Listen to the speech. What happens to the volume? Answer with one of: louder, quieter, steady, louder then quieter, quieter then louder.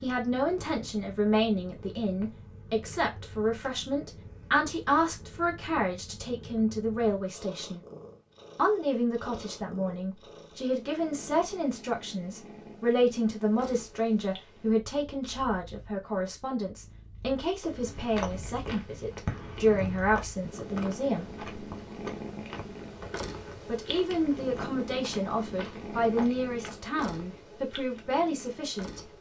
steady.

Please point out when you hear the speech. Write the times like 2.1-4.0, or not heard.
0.0-7.8, 8.6-21.3, 23.6-29.1.